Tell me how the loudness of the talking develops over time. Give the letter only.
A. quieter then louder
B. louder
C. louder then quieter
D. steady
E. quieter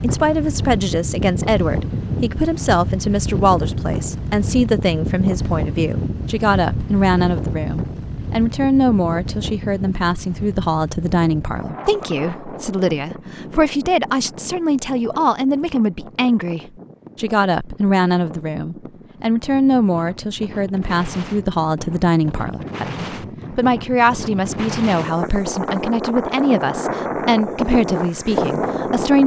D.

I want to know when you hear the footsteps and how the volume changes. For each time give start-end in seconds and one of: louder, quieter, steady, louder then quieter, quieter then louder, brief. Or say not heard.
not heard.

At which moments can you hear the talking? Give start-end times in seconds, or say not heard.
0.0-29.2.